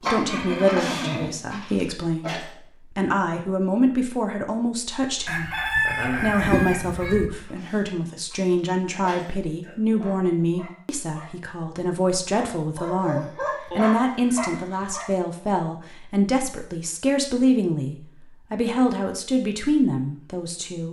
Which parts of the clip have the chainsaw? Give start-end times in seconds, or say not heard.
not heard.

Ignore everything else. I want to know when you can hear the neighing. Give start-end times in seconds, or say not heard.
0.2-1.4, 12.9-15.0.